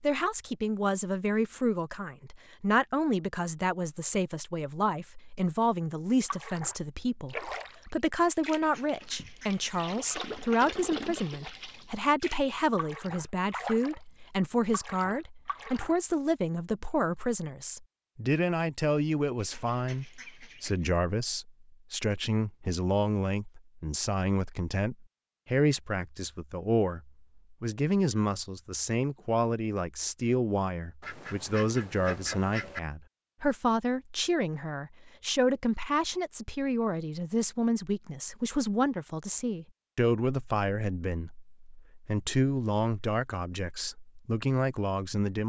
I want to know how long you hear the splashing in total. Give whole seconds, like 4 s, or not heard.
10 s.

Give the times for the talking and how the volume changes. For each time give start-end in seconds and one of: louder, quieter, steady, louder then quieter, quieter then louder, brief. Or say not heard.
0.0-45.4 steady.